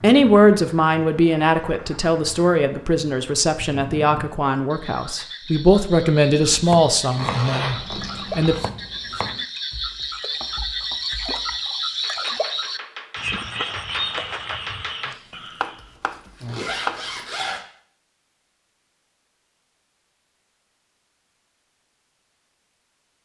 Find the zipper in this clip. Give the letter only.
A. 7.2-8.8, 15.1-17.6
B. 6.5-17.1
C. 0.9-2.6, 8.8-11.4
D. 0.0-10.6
A.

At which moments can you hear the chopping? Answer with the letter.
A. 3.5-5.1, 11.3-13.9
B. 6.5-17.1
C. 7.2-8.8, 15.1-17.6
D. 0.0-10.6
B.